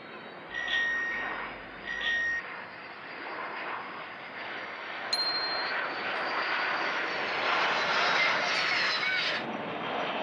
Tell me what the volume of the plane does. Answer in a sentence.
The volume of the plane goes up.